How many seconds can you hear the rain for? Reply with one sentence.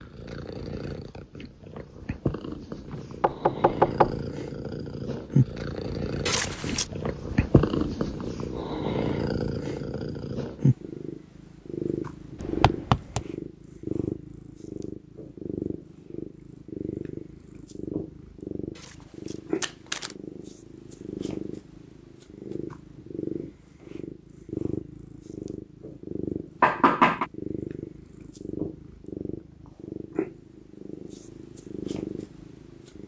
The rain can't be heard in this clip.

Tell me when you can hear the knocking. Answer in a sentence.
The knocking can be heard from 2.9 to 4.2 s, from 12.4 to 13.2 s and from 26.6 to 27.2 s.